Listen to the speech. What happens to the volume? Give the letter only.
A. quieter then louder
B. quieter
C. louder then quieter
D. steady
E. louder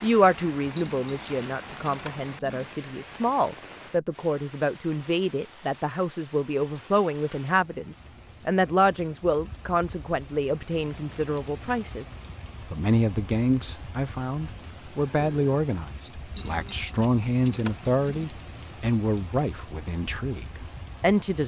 D.